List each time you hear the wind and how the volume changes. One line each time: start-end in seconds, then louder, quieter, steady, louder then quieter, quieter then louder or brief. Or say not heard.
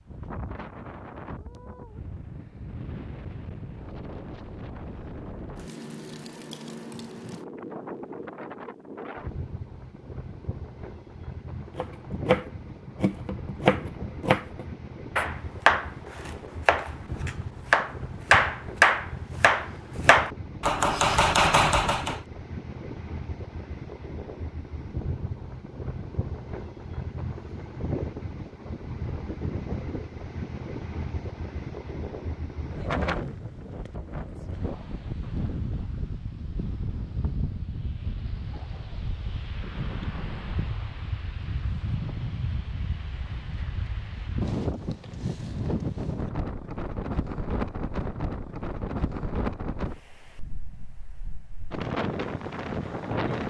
0.0-53.4 louder.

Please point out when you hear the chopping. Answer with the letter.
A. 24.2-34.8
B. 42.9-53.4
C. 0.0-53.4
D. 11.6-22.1
D.